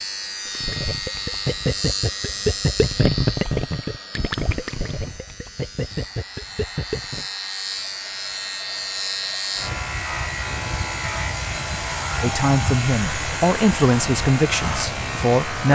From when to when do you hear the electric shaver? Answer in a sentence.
The electric shaver can be heard from 0.0 to 15.7 s.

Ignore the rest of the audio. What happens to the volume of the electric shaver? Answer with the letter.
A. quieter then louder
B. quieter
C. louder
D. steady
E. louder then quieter
A.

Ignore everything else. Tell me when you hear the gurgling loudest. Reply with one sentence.
The volume of the gurgling peaks at 3 seconds.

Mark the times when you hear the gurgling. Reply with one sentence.
You can hear the gurgling from 0.6 to 7.2 s.